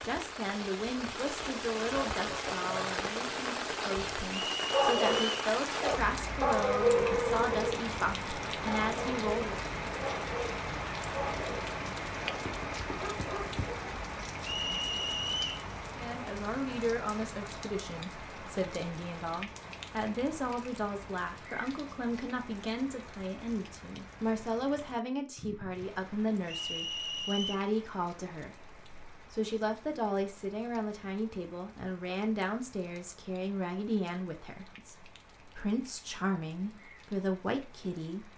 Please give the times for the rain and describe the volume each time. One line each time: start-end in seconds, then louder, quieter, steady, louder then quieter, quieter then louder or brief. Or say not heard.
0.0-38.3 quieter.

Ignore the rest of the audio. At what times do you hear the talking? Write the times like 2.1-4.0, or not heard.
0.0-9.6, 15.9-38.3.